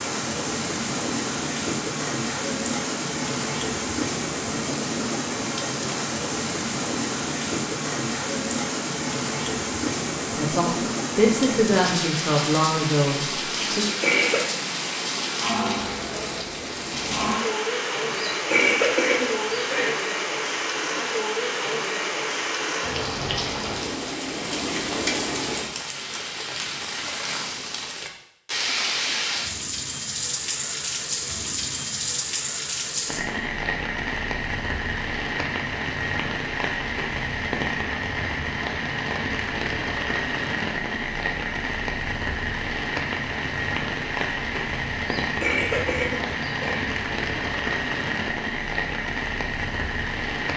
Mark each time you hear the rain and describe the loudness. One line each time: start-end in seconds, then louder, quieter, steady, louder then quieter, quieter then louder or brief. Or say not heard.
0.0-50.5 steady.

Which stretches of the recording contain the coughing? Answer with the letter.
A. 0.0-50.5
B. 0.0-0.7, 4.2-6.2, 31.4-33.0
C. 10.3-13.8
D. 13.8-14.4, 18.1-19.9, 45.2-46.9
D.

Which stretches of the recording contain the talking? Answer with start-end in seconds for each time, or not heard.
10.3-13.8.